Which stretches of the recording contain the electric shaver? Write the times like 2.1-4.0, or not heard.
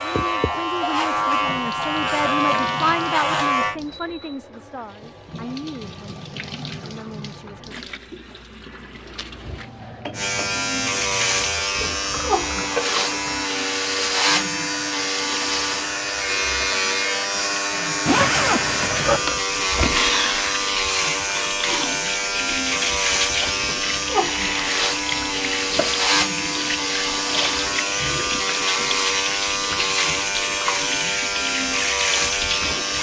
0.0-3.8, 10.2-32.9.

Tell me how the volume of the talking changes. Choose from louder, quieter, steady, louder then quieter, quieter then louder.
louder then quieter.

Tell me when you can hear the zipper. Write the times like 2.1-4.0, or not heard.
18.1-19.2.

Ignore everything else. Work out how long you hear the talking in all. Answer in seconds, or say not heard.
8 s.